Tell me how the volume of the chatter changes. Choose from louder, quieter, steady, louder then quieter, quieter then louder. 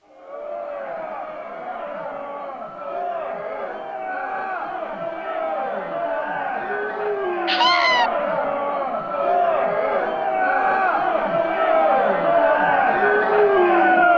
louder.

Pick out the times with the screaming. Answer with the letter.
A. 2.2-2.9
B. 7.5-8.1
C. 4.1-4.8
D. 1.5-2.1
B.